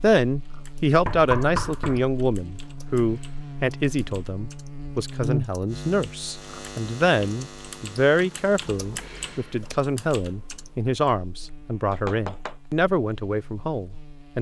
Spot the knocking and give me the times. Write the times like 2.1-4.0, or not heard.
1.1-2.1, 11.9-12.6.